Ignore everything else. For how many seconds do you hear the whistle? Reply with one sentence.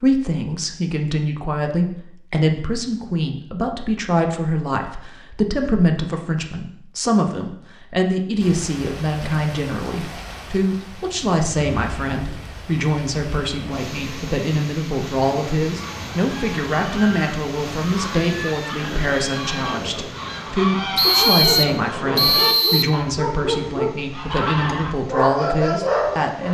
The whistle can be heard for 2 seconds in total.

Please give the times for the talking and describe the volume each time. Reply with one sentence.
You can hear the talking from 0.0 to 26.4 s, at a steady volume.